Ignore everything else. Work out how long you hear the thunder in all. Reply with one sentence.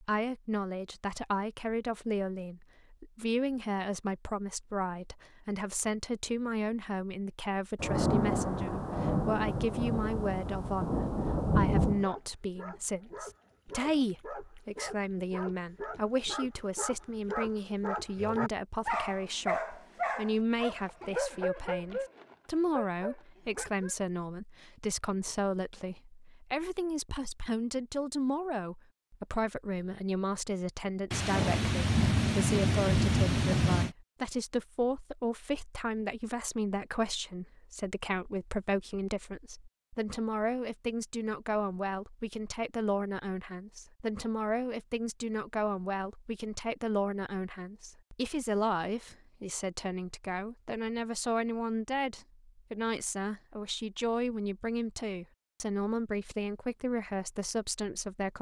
You can hear the thunder for 7 seconds altogether.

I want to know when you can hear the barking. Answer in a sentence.
You can hear the barking from 11.9 to 23.9 s.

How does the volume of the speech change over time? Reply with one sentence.
The loudness of the speech stays about the same.